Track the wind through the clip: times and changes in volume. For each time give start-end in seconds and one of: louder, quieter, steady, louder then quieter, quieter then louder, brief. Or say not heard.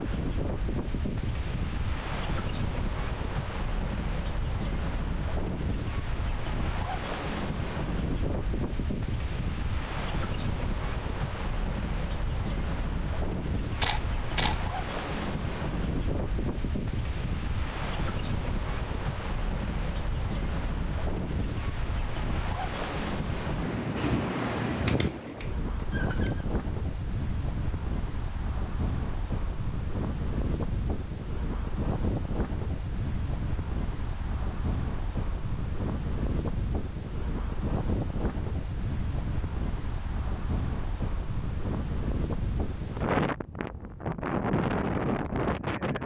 0.0-46.0 steady.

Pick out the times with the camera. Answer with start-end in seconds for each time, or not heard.
13.8-14.7, 24.9-26.4.